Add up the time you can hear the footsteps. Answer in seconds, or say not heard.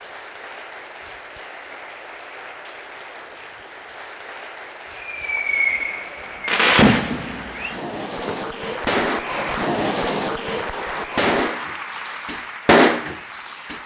not heard.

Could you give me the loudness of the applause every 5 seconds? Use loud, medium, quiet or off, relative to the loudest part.
medium, loud, loud.